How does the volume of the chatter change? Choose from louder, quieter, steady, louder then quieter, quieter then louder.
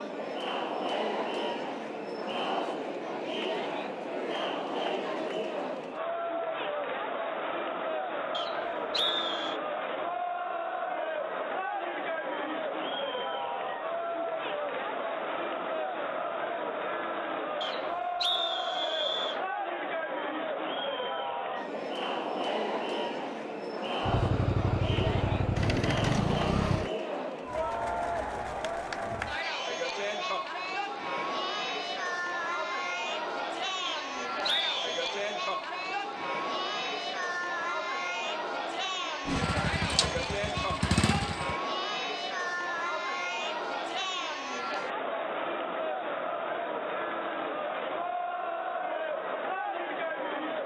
steady.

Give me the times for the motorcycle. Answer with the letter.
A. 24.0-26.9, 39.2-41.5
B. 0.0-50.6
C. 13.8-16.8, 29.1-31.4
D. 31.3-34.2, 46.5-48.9
A.